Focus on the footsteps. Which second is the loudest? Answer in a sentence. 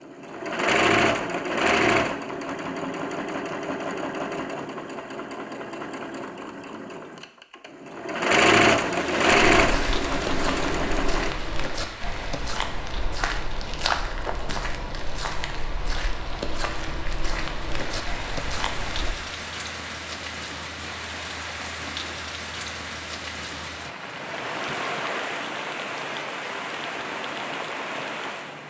The loudest moment of the footsteps is at 14 seconds.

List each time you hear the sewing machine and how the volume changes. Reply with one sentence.
The sewing machine can be heard from 0.0 to 11.3 s, getting quieter then louder.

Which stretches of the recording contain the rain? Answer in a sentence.
You can hear the rain from 8.9 to 28.6 s.